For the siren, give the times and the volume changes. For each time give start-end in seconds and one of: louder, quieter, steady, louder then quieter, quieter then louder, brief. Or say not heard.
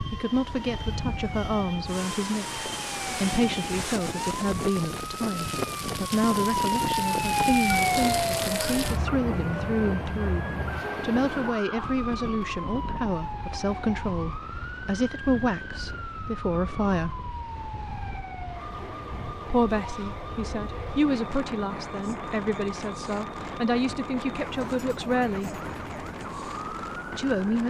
0.0-27.6 louder then quieter.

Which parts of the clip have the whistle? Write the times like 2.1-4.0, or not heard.
not heard.